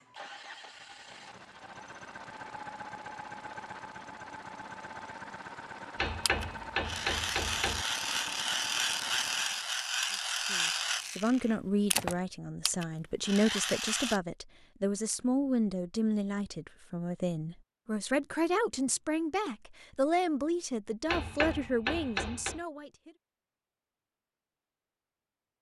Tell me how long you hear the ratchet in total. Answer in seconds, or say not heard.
8 s.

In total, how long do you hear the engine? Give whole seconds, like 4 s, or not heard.
10 s.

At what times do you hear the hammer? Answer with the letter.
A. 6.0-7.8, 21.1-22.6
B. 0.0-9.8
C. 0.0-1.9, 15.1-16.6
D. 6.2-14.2
A.